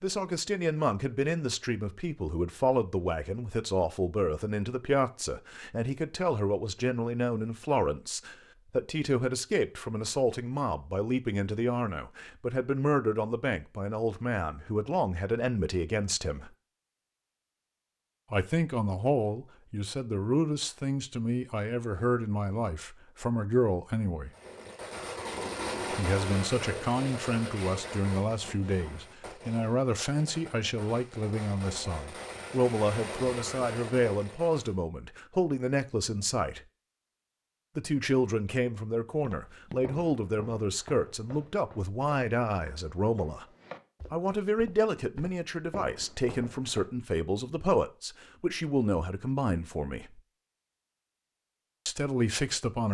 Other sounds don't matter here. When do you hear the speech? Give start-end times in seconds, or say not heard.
0.0-16.5, 18.3-24.3, 25.9-36.6, 37.8-43.5, 44.1-50.2, 51.9-52.9.